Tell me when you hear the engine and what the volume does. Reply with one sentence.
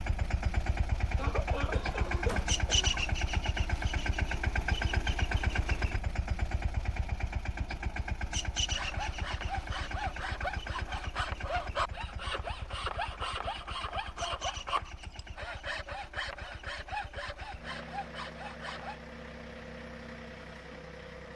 The engine can be heard from 0.0 to 21.3 s, getting quieter.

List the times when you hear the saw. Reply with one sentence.
You can hear the saw from 8.7 to 18.9 s.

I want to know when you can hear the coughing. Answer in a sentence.
You can hear the coughing from 1.1 to 3.0 s.